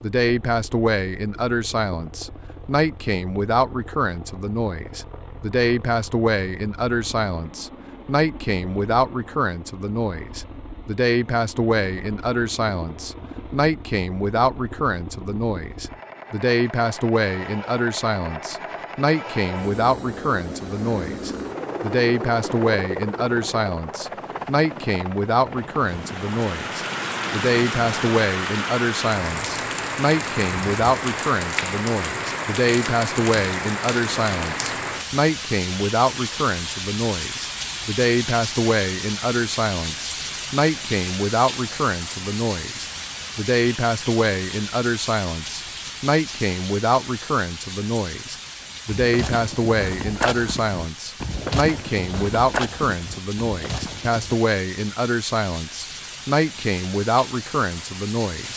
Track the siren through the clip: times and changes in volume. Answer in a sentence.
The siren can't be heard in this clip.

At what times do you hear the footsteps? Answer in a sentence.
You can hear the footsteps from 48.9 to 54.4 s.